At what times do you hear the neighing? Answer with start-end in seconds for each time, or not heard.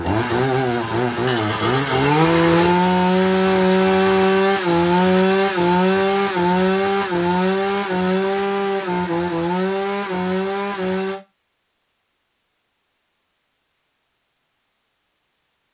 1.2-2.8.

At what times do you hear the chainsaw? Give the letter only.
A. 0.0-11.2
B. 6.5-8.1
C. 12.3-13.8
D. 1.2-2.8
A.